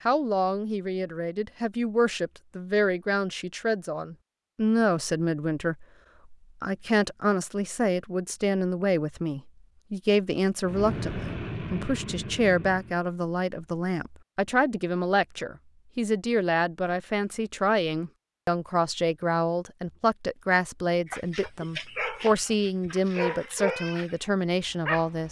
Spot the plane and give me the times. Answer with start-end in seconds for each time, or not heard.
10.6-13.0.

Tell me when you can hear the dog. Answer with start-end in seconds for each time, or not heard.
21.1-25.2.